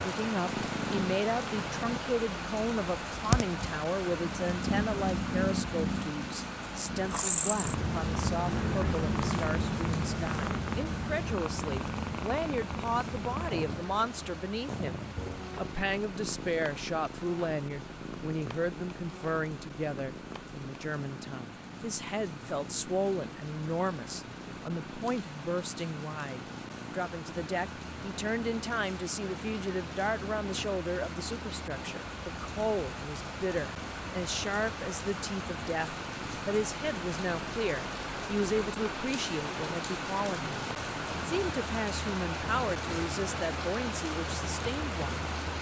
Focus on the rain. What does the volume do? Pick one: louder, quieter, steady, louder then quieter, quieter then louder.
quieter then louder.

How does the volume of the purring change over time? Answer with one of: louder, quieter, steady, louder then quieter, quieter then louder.
quieter.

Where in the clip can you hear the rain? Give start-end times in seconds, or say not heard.
0.0-45.5.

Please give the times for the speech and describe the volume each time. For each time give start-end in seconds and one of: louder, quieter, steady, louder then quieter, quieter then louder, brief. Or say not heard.
0.0-45.3 steady.